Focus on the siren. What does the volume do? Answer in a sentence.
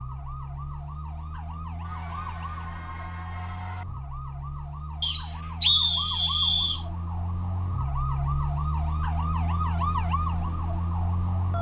The loudness of the siren goes up.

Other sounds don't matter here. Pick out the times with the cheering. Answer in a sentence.
The cheering can be heard from 1.8 to 3.9 s.